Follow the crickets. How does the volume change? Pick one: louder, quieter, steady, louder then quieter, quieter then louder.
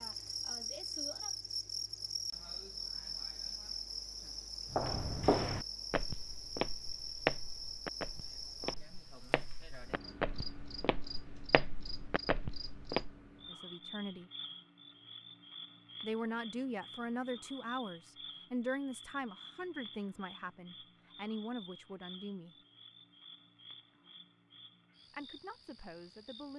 quieter.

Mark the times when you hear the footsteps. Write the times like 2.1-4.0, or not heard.
4.7-13.1.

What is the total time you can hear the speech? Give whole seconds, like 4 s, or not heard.
9 s.